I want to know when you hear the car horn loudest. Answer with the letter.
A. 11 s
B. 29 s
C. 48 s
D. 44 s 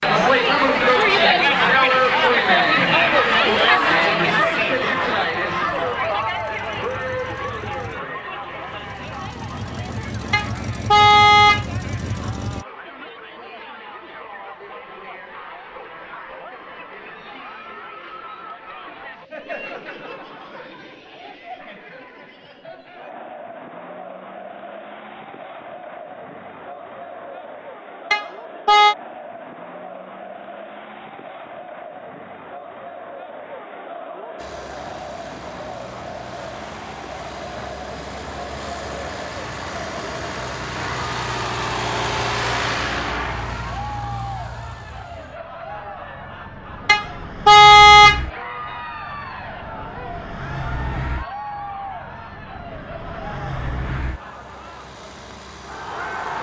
C.